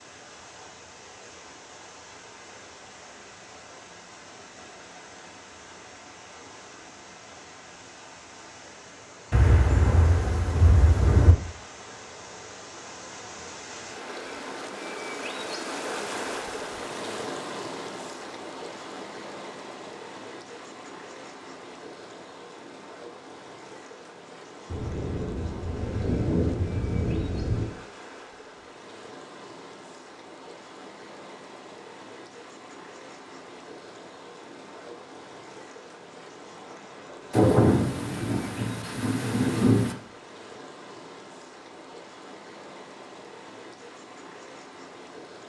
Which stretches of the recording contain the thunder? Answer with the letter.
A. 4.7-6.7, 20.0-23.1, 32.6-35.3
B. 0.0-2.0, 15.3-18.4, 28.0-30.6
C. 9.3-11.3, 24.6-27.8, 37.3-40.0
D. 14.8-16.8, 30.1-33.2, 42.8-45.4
C.